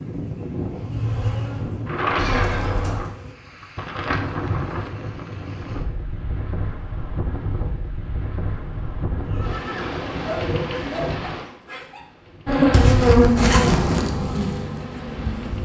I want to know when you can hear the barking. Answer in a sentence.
The barking can be heard from 10.2 to 12.0 s.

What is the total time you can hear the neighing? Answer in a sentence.
The neighing can be heard for 2 seconds in total.